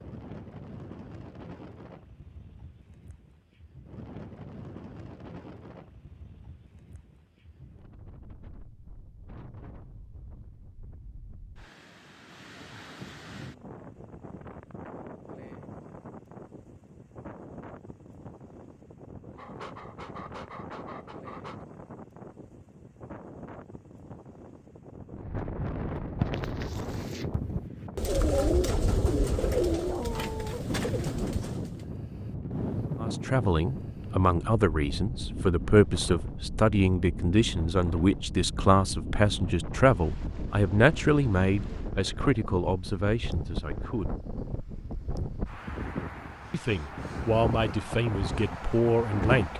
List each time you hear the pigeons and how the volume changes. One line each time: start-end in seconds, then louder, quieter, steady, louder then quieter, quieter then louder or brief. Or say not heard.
26.0-31.9 louder then quieter.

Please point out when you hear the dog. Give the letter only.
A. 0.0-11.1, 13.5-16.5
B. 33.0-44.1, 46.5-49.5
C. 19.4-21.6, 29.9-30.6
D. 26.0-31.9
C.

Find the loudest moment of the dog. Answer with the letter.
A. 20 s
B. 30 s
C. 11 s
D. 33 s
B.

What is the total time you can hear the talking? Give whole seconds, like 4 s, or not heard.
14 s.